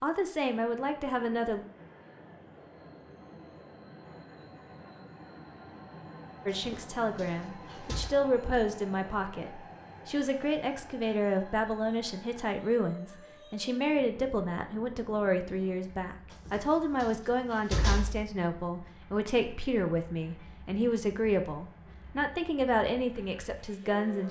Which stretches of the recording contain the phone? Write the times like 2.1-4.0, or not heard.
not heard.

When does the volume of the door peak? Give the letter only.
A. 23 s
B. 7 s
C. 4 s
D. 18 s
D.